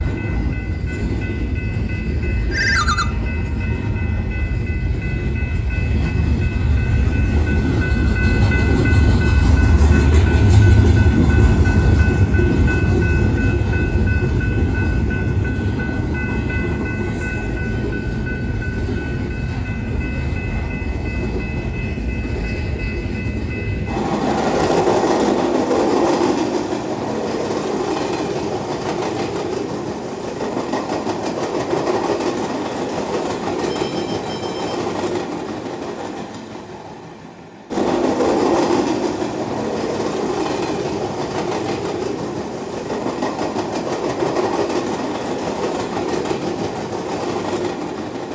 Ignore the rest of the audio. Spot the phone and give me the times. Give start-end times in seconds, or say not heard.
2.5-3.0, 33.7-34.8.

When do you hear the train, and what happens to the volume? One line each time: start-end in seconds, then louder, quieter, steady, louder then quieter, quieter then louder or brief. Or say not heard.
0.0-48.3 steady.